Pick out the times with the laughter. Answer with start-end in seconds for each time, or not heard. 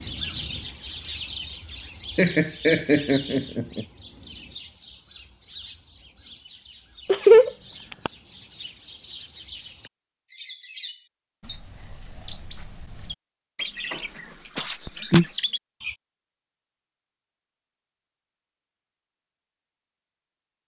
2.1-3.9, 7.0-8.1, 14.6-15.2.